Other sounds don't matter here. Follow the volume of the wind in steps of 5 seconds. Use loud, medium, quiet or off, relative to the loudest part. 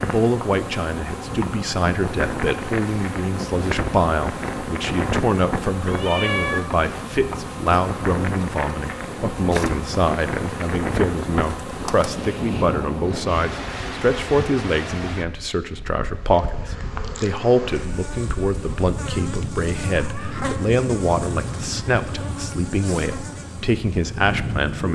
loud, loud, loud, medium, loud.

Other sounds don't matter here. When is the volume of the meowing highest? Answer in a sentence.
The volume of the meowing peaks at 6 seconds.